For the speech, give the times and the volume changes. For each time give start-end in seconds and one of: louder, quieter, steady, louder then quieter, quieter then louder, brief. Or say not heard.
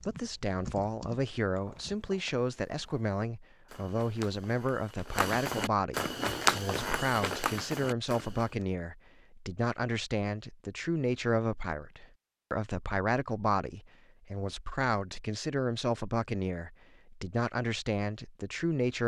0.1-19.0 steady.